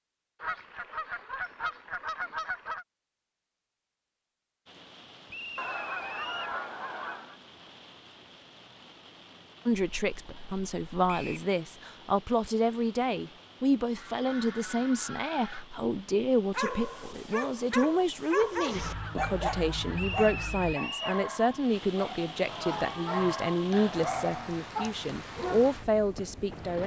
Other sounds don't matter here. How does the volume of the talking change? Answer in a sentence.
The loudness of the talking stays about the same.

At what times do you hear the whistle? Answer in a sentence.
The whistle can be heard from 5.2 to 6.5 s, from 11.1 to 11.5 s and from 19.9 to 21.2 s.